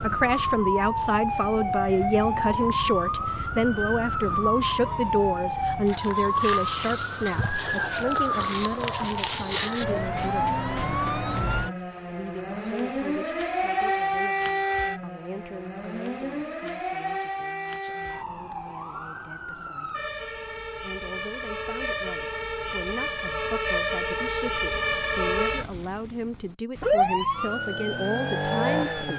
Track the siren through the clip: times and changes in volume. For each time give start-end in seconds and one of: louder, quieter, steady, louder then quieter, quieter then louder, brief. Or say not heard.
0.0-29.1 quieter then louder.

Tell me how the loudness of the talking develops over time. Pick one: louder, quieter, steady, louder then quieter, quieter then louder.
quieter then louder.